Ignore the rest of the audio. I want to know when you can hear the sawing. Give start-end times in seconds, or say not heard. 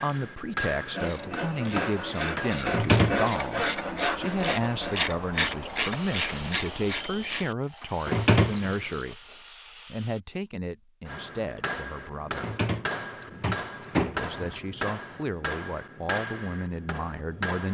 0.9-10.2.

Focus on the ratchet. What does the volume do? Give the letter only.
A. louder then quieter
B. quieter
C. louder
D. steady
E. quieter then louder
A.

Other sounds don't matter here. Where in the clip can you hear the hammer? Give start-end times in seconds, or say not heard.
0.0-2.5, 11.1-17.6.